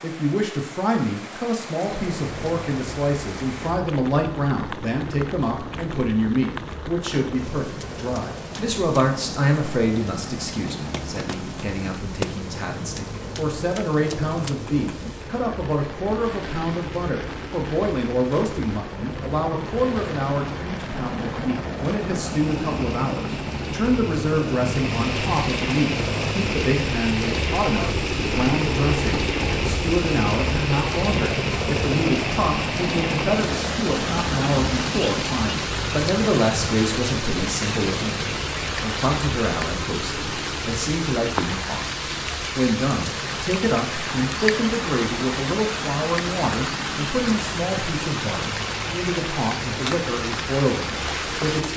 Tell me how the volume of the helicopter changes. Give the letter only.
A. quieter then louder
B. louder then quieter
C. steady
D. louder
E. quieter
B.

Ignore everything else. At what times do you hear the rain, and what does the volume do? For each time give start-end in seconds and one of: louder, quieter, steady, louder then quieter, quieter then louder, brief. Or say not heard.
0.0-51.7 louder.